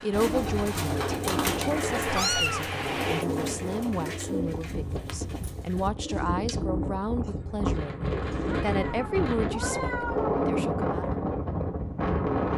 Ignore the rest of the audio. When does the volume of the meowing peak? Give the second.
2 s.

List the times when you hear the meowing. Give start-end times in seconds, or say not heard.
1.7-3.2, 8.4-10.4.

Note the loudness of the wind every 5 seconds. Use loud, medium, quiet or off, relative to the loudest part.
medium, medium, loud.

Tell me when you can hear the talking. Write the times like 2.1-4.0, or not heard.
0.0-11.1.